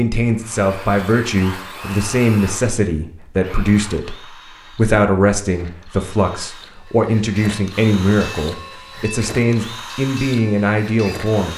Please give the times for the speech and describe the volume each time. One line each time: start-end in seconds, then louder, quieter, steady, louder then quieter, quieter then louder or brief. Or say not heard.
0.0-11.5 steady.